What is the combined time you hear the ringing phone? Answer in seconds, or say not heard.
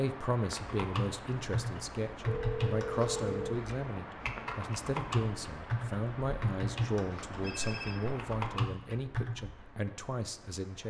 2 s.